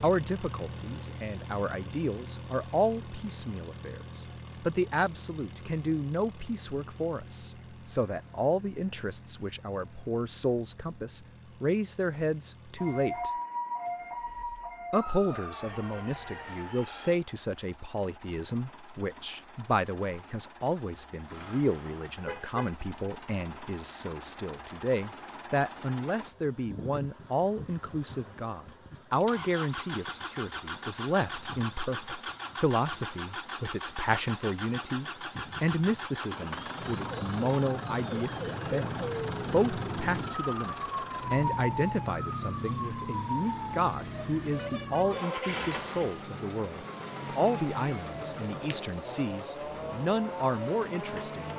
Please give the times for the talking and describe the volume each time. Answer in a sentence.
You can hear the talking from 0.0 to 13.3 s, at a steady volume; and from 14.9 to 51.5 s, at a steady volume.